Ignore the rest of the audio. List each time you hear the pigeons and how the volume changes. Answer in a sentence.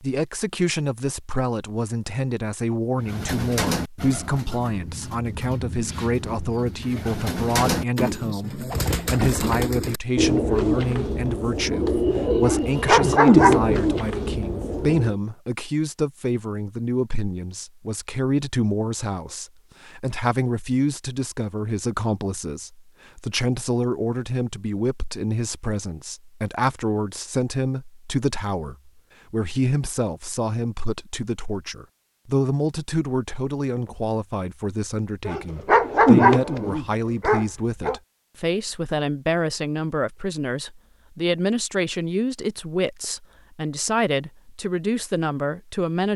The pigeons can be heard from 3.0 to 15.2 s, getting louder.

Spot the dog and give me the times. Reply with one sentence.
You can hear the dog from 12.4 to 14.0 s and from 35.2 to 38.0 s.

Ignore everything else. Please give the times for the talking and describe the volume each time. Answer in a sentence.
The talking can be heard from 0.0 to 46.1 s, at a steady volume.